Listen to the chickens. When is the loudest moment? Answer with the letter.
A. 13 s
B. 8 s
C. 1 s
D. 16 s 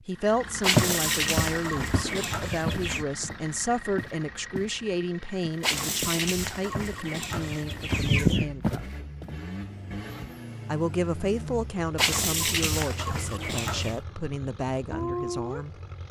B.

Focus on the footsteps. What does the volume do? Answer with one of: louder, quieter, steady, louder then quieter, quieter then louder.
quieter then louder.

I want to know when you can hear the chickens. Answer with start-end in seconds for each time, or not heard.
0.6-3.0, 5.6-8.4, 11.9-14.0.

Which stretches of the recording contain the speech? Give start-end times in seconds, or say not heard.
0.1-8.9, 10.7-15.7.